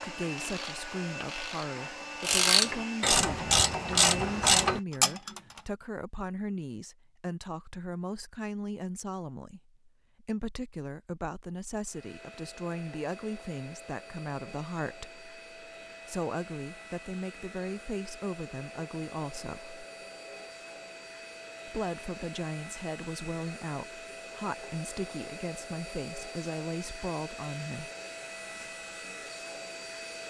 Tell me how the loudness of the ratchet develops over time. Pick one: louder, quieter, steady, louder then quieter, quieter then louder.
louder.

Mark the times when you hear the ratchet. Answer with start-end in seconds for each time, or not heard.
0.0-5.6.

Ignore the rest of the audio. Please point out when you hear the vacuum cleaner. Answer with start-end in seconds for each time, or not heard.
0.0-4.8, 11.8-30.2.